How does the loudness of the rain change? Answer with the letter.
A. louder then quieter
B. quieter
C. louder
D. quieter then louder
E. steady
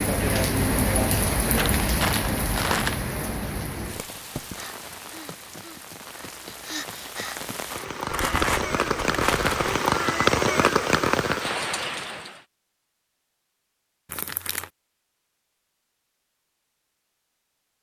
D.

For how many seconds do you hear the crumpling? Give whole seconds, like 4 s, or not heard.
4 s.